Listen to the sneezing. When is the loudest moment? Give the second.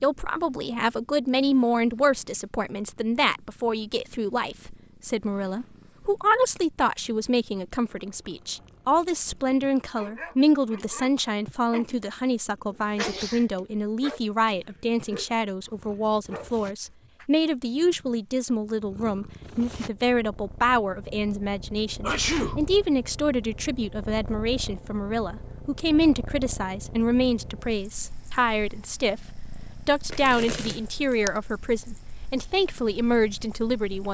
22 s.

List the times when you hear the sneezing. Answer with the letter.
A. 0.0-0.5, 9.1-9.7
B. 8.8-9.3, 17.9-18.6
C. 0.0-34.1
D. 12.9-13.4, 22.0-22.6
D.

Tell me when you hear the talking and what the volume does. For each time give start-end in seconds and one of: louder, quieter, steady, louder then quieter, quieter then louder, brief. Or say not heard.
0.0-34.1 steady.